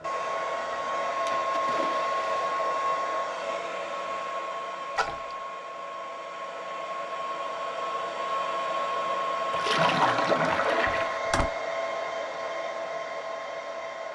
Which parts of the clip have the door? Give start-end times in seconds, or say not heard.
10.8-11.5.